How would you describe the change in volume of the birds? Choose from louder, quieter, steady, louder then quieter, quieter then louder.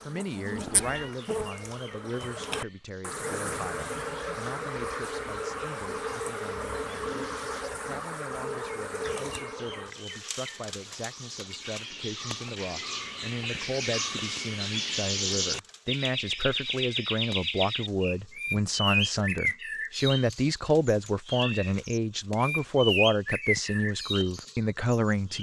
louder.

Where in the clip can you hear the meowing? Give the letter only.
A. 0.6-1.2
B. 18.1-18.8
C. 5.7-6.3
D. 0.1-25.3
A.